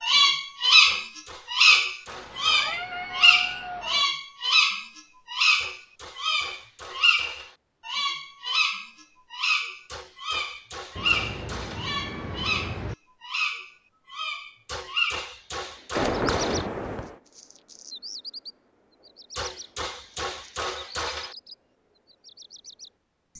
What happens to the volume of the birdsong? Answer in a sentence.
The loudness of the birdsong goes down.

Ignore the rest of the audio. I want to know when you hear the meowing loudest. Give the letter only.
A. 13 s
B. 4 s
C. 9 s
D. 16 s
D.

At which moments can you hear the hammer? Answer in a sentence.
The hammer can be heard from 0.8 to 2.6 s, from 5.5 to 7.6 s, from 9.8 to 11.9 s, from 14.7 to 16.7 s and from 19.4 to 21.4 s.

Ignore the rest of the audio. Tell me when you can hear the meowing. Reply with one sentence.
You can hear the meowing from 2.0 to 4.0 s, from 10.9 to 12.9 s and from 15.9 to 17.1 s.